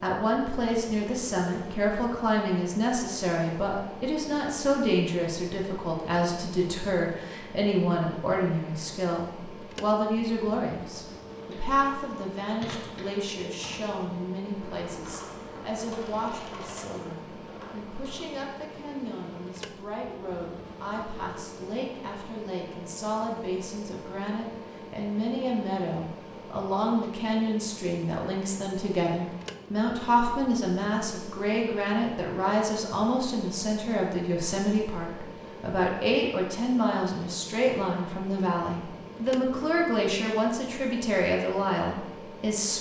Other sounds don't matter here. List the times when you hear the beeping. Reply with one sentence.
The beeping can't be heard in this clip.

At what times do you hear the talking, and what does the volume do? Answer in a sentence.
The talking can be heard from 0.0 to 42.7 s, getting quieter then louder.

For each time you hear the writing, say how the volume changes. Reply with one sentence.
The writing can't be heard in this clip.